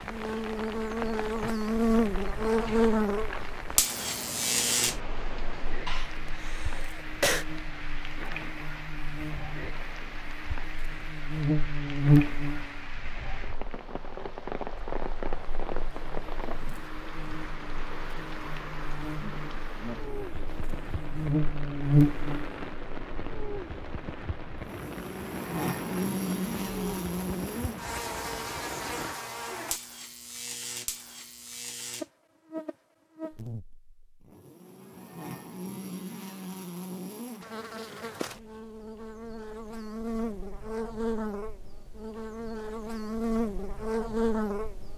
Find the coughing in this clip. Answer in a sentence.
The coughing can be heard from 5.8 to 7.5 s.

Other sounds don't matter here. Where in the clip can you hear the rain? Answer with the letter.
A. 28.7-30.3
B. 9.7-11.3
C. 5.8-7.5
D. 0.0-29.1
D.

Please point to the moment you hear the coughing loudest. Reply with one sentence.
The volume of the coughing peaks at 7 seconds.